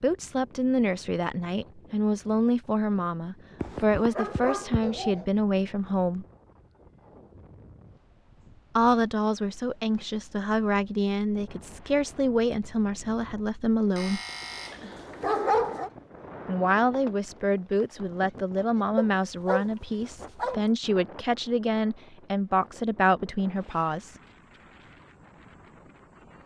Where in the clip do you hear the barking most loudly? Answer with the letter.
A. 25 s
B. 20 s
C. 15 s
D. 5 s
C.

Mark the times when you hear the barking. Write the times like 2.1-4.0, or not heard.
3.6-5.2, 13.9-15.9, 18.9-20.6.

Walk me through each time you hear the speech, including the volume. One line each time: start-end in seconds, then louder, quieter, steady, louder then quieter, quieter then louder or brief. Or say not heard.
0.0-6.2 steady
8.8-14.2 steady
16.4-24.2 steady.